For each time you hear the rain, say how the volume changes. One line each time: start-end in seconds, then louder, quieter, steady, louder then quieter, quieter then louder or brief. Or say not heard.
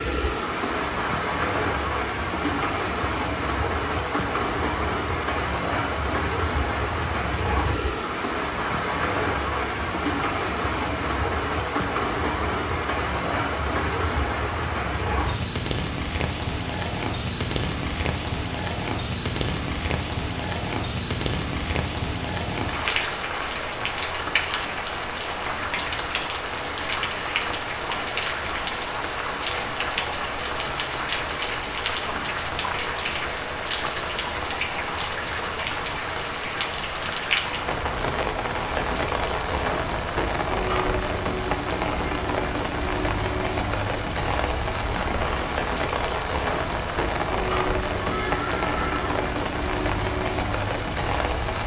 0.0-51.6 steady.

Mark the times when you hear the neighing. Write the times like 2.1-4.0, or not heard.
48.0-49.0.